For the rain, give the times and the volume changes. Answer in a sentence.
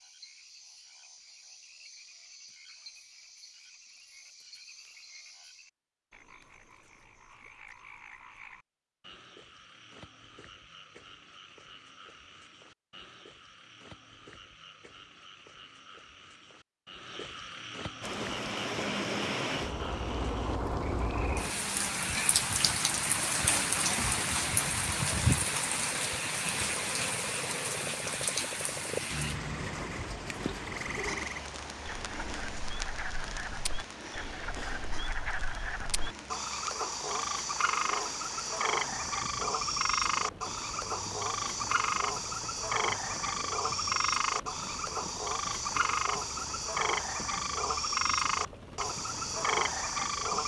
You can hear the rain from 18.0 to 50.4 s, getting quieter.